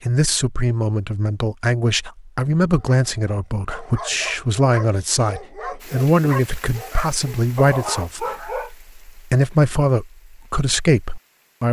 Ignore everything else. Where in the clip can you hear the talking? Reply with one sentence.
You can hear the talking from 0.1 to 11.6 s.